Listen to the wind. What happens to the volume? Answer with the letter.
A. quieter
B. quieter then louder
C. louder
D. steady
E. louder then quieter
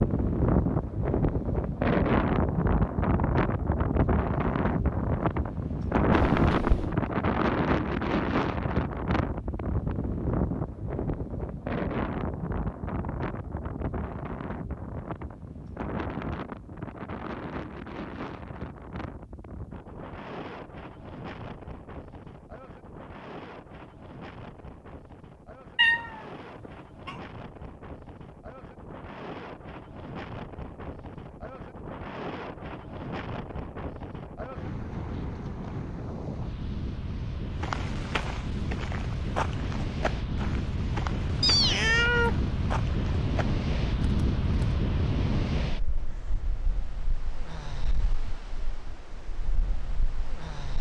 B.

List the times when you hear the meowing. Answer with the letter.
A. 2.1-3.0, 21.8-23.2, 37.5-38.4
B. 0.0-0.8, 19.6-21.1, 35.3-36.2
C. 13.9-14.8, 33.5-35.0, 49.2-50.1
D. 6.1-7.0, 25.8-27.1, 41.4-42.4
D.